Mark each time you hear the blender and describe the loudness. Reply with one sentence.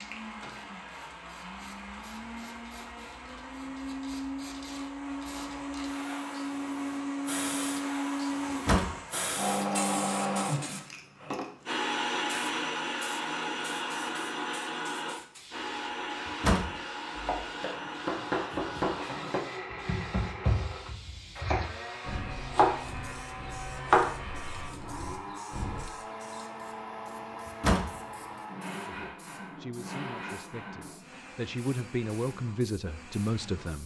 You can hear the blender from 0.0 to 33.8 s, getting louder then quieter.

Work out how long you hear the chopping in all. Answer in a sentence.
The chopping can be heard for 9 seconds in total.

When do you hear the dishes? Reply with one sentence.
You can't hear the dishes here.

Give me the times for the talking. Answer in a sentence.
You can hear the talking from 29.0 to 33.8 s.